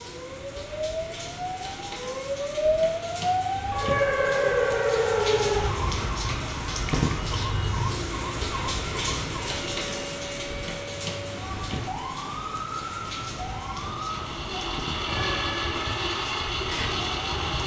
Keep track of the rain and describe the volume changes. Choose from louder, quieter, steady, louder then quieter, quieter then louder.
louder then quieter.